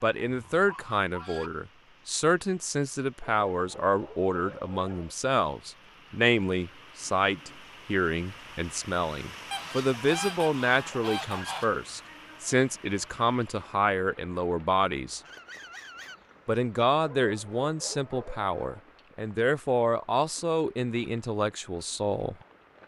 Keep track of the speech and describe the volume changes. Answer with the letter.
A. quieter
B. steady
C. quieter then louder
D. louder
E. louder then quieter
B.